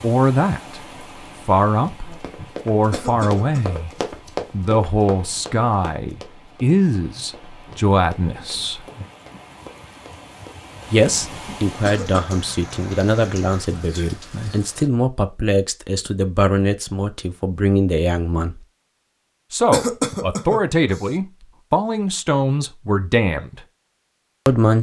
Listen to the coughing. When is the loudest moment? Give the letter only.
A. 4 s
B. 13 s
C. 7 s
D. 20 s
D.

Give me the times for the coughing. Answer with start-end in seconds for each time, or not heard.
2.9-3.8, 11.8-12.4, 19.7-21.1.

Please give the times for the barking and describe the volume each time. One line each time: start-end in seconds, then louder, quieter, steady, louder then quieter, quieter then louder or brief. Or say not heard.
not heard.